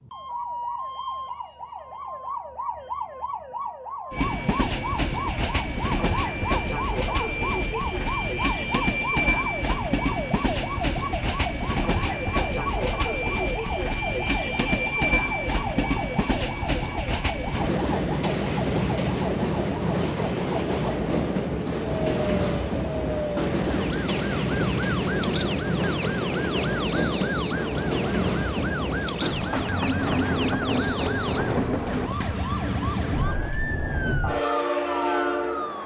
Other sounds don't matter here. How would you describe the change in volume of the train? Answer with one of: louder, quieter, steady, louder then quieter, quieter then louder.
steady.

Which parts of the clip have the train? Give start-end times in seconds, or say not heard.
4.1-35.8.